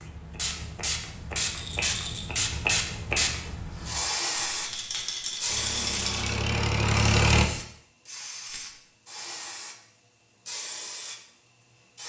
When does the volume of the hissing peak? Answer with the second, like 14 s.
3 s.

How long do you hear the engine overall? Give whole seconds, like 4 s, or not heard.
2 s.